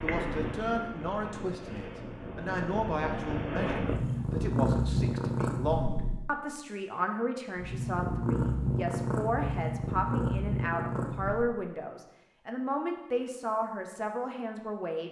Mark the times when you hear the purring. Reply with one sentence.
The purring can be heard from 0.0 to 6.3 s and from 7.5 to 11.6 s.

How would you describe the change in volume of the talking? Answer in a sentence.
The volume of the talking stays about the same.